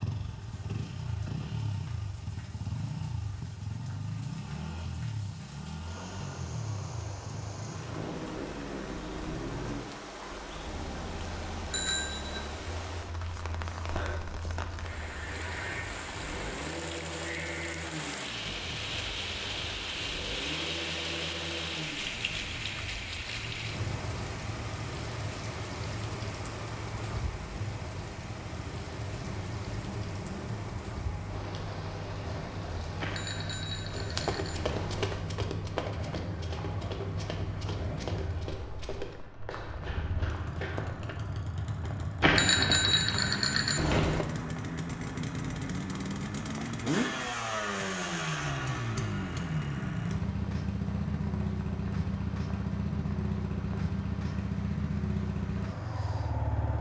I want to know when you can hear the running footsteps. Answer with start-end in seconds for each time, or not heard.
33.9-41.1.